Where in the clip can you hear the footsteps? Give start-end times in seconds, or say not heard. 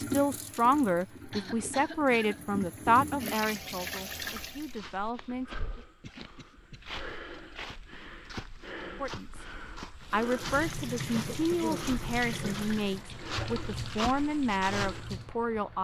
4.1-15.1.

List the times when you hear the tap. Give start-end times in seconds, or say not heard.
0.0-4.8, 10.1-15.7.